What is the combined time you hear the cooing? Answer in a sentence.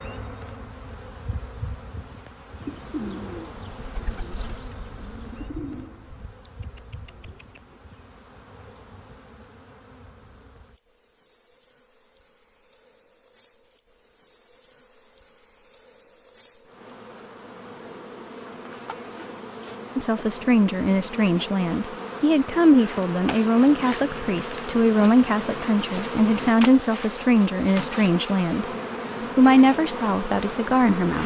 The cooing can be heard for 5 seconds in total.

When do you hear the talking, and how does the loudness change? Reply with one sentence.
The talking can be heard from 19.9 to 28.6 s, at a steady volume; and briefly from 29.4 to 31.2 s.